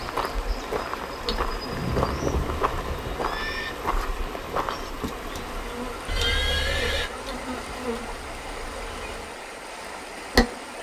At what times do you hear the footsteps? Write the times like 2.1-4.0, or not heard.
0.0-4.9.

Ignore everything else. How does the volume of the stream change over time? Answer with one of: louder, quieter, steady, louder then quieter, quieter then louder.
steady.